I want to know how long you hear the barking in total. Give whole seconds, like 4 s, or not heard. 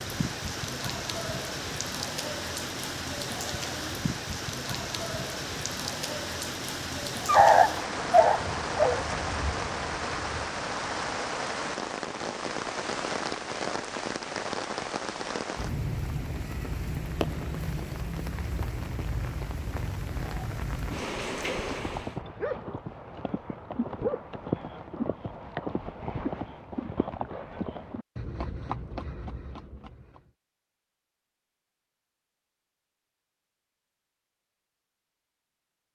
2 s.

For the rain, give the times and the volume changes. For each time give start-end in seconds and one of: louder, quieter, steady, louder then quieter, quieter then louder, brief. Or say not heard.
0.0-22.2 steady.